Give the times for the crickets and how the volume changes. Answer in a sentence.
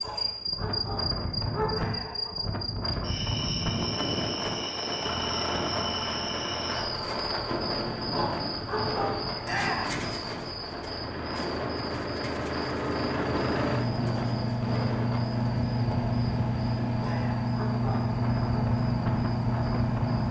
The crickets can be heard from 0.0 to 20.2 s, getting quieter.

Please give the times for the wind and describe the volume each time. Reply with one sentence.
You can hear the wind from 0.0 to 20.2 s, at a steady volume.